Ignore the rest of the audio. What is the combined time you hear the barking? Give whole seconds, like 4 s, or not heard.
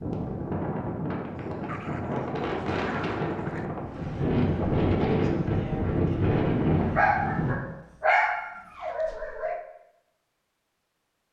5 s.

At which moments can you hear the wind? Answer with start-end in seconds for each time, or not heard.
0.0-7.5.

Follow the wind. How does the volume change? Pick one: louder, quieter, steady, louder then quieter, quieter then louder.
louder.